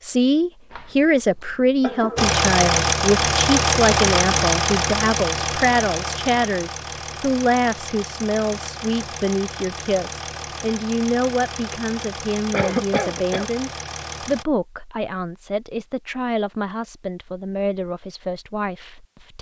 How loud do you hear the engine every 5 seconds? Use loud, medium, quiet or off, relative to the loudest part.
loud, medium, quiet, off.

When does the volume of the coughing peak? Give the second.
13 s.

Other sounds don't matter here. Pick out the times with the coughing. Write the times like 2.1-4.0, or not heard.
0.7-2.4, 12.5-13.5.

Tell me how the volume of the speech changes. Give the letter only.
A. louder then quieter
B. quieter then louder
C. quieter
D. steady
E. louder
C.